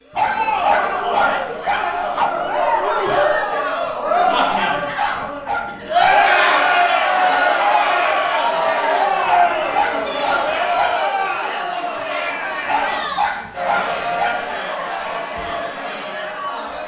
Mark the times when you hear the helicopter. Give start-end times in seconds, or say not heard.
not heard.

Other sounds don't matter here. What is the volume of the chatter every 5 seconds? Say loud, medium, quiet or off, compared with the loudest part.
loud, loud, medium, medium.